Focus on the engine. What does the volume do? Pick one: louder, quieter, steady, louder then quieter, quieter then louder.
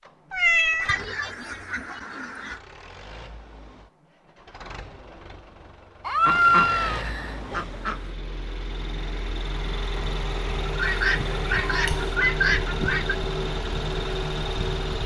louder.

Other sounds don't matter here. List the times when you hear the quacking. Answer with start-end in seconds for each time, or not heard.
0.8-2.6, 6.2-8.1, 10.7-13.2.